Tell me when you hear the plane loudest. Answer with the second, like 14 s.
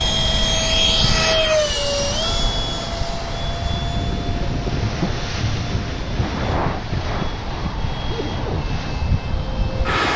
1 s.